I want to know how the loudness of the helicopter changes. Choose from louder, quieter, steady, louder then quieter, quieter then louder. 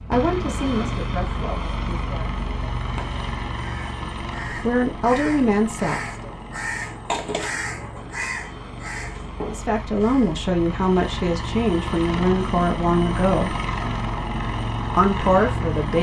quieter then louder.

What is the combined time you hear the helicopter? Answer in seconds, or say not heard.
16 s.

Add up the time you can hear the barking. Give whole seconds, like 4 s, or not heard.
not heard.